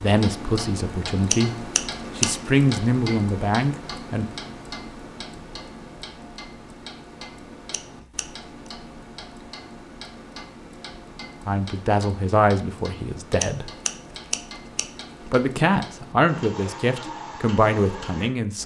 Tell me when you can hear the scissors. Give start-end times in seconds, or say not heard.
1.3-2.3, 7.7-8.7, 13.4-14.8.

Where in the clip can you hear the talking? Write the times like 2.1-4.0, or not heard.
0.0-4.2, 11.4-13.7, 15.2-18.6.